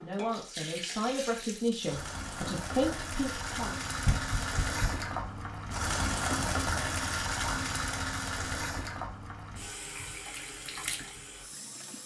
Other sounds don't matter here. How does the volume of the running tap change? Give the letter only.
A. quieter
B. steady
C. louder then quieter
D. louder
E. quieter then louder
C.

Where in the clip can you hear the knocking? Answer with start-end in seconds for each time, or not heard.
4.0-5.0.